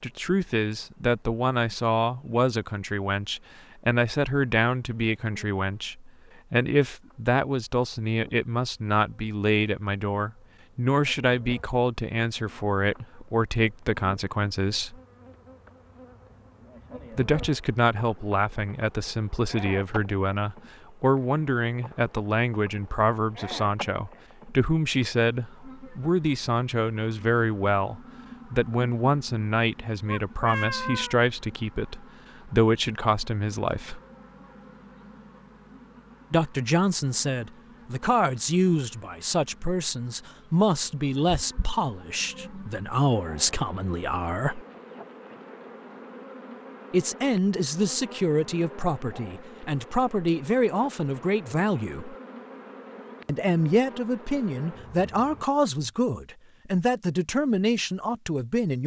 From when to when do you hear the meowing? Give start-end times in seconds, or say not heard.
30.1-31.2.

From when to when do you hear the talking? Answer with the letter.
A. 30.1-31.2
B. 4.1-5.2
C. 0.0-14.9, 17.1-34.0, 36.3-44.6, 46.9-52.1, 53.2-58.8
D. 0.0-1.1
C.